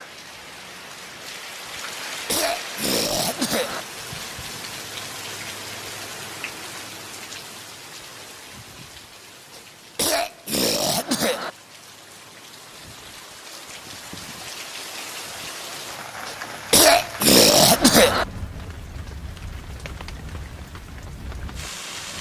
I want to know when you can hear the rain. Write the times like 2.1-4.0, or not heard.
0.0-22.1.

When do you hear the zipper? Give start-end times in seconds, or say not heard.
not heard.